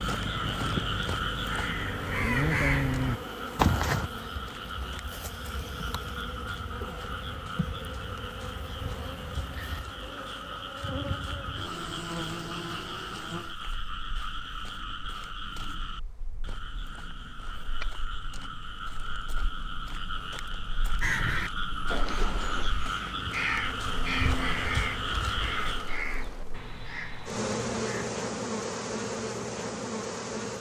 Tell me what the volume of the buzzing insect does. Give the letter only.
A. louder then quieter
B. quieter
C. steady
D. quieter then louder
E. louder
D.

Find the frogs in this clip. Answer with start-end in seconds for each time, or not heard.
0.0-26.0.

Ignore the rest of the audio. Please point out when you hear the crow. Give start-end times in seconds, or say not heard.
0.1-4.1, 21.0-28.1.